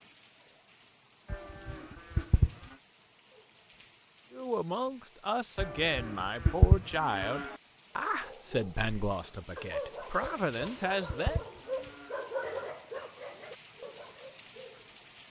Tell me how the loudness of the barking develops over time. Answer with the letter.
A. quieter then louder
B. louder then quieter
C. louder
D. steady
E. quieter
B.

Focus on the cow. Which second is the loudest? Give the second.
7 s.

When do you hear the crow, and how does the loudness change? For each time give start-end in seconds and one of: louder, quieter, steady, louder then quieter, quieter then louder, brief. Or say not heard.
not heard.